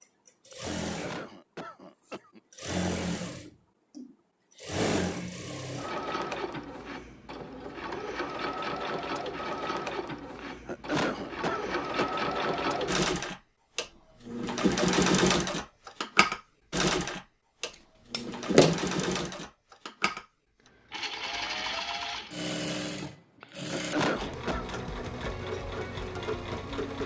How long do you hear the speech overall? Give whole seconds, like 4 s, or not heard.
not heard.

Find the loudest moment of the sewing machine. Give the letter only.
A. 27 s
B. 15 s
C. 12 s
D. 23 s
B.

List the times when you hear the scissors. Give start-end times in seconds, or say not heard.
18.1-19.2.